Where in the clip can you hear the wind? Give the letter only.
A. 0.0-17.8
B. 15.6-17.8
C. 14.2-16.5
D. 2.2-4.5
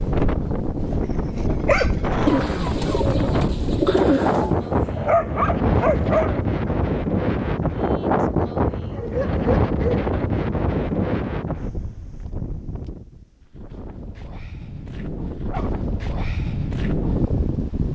A.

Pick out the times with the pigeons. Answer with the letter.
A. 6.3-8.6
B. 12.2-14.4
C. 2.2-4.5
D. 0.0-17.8
C.